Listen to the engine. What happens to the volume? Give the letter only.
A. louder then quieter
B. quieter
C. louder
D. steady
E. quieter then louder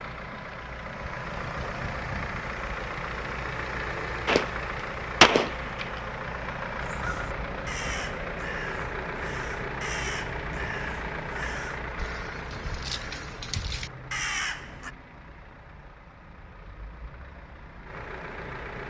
B.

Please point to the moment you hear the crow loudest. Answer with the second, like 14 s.
14 s.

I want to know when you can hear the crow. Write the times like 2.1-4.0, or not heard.
6.8-14.9.